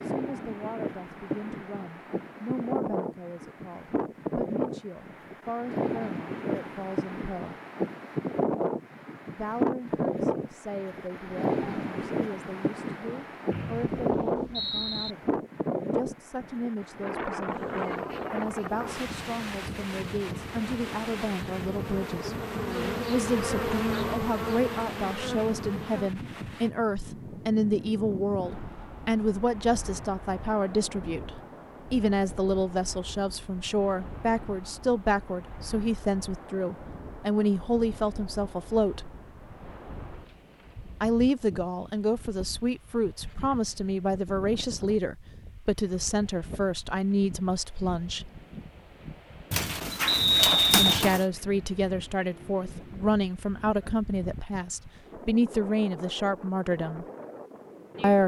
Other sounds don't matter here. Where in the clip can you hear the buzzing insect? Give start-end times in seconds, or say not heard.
17.4-26.1.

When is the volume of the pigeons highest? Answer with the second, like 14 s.
51 s.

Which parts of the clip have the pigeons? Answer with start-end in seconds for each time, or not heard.
49.5-51.2.